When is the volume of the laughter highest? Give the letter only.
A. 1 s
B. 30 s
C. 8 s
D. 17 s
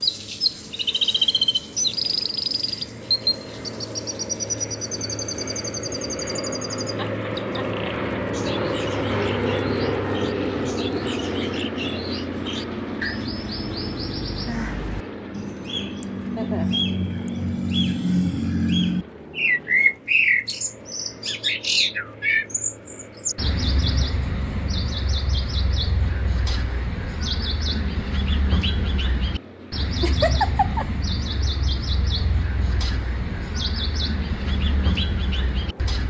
B.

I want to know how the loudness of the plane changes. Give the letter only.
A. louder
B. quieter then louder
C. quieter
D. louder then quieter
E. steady
D.